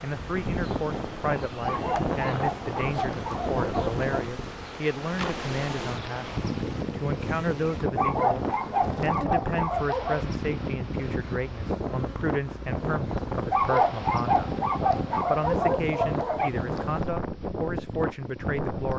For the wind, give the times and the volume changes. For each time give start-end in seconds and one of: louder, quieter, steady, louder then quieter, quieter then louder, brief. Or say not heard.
0.0-18.9 steady.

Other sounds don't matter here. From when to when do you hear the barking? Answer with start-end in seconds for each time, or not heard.
1.6-4.2, 8.0-10.2, 13.5-16.5.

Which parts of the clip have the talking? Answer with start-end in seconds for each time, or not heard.
0.0-14.5, 15.2-18.9.